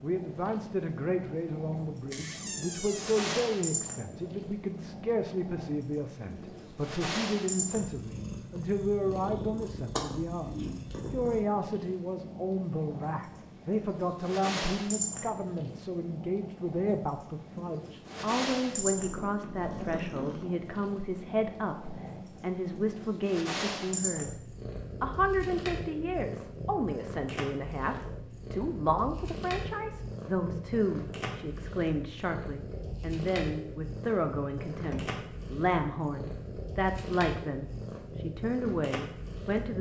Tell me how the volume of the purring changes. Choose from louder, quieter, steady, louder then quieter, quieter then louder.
steady.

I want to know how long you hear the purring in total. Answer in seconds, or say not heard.
40 s.